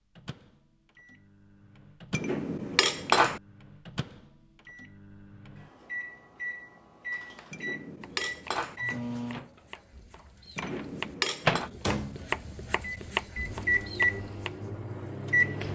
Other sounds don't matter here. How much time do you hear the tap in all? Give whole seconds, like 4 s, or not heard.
not heard.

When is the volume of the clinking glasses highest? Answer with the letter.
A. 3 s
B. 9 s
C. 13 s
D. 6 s
A.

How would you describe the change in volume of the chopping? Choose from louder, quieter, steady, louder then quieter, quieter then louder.
louder.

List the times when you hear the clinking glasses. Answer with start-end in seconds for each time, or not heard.
2.1-3.4, 7.5-8.8, 10.6-11.7.